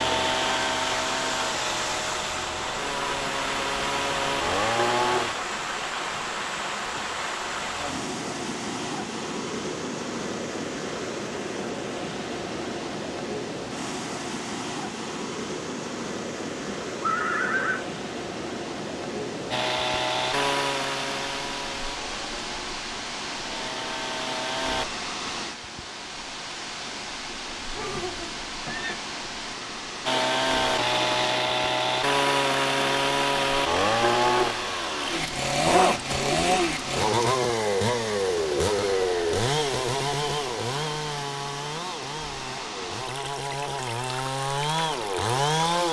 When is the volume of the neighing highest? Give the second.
17 s.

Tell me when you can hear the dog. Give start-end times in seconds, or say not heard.
not heard.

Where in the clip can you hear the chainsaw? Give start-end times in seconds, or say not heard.
0.0-5.3, 19.5-24.9, 30.1-45.8.